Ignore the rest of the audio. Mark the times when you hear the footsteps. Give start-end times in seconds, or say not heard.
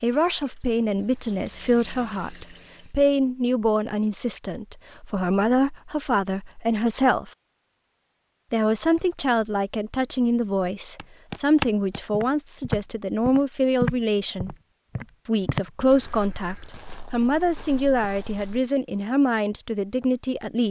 10.9-18.6.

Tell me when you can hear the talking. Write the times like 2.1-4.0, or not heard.
0.0-7.3, 8.5-14.6, 15.2-20.6.